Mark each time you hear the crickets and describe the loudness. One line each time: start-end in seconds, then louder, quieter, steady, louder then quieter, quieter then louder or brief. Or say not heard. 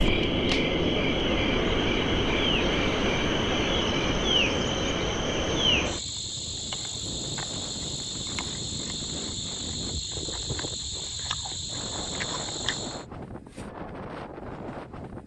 0.0-13.1 quieter.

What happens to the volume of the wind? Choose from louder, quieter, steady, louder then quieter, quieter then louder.
steady.